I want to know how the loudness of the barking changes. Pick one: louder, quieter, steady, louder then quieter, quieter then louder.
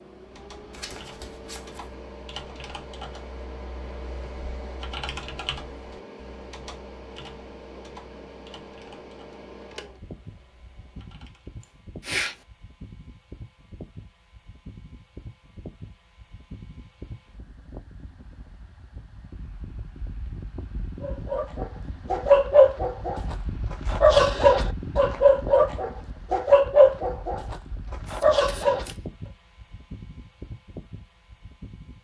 quieter.